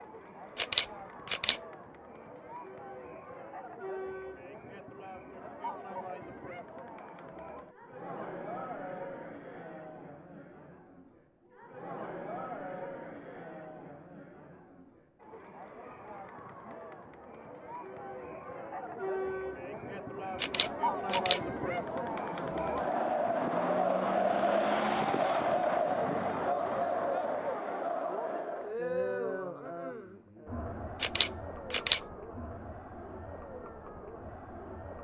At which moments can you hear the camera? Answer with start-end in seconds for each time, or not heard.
0.6-1.6, 20.4-21.4, 31.0-32.0.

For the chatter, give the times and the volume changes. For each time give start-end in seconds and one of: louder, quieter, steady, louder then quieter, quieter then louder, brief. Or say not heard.
0.0-34.9 louder then quieter.